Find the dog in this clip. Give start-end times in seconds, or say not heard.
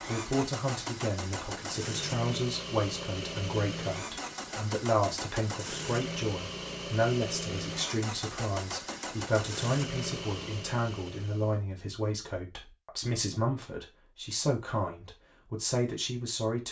not heard.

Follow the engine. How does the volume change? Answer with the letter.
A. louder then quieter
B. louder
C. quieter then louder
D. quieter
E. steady
E.